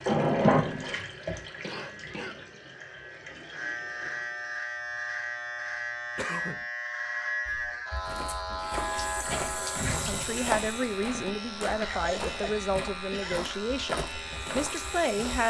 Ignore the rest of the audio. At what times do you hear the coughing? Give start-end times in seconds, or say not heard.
1.6-2.6, 6.2-6.7, 11.8-13.5.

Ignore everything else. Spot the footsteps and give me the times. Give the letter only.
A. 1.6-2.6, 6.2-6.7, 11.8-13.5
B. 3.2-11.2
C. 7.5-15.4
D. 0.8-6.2
C.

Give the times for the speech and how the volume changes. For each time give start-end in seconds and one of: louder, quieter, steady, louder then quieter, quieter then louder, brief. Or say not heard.
10.1-15.4 steady.